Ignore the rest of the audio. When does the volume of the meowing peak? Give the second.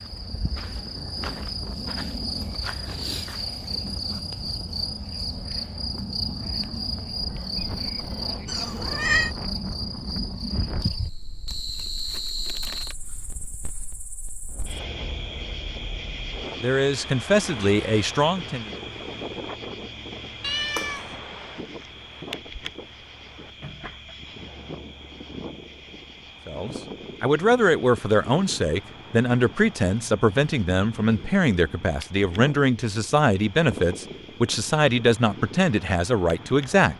9 s.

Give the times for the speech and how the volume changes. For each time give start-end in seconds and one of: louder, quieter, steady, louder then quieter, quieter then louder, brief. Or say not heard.
16.6-18.7 brief
26.4-36.9 steady.